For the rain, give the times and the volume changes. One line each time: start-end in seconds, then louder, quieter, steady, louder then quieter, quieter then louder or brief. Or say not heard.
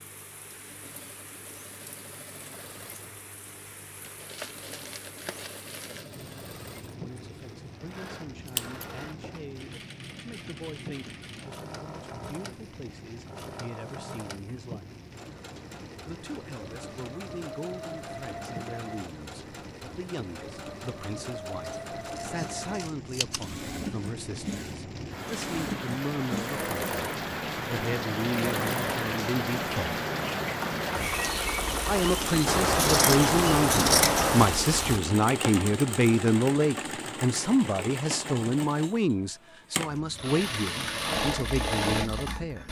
0.0-35.0 louder.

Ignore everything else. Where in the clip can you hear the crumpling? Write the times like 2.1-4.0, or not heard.
4.0-6.0.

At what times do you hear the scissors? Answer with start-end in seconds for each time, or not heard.
8.6-9.3, 22.1-23.4, 32.5-34.5.